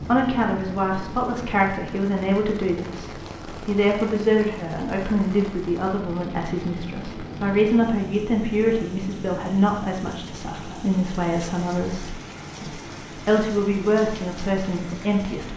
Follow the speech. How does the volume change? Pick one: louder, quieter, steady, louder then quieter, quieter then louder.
steady.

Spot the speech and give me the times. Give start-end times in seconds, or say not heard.
0.1-15.5.